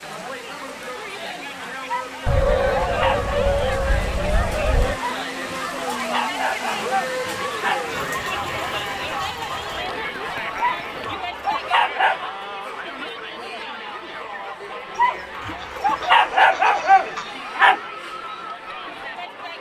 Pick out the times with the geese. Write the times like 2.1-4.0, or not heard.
2.2-5.0, 15.6-17.3.